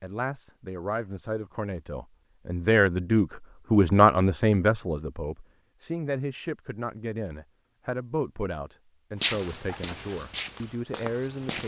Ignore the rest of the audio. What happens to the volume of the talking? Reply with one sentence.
The loudness of the talking goes up, then down.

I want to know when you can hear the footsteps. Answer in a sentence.
You can hear the footsteps from 9.2 to 11.6 s.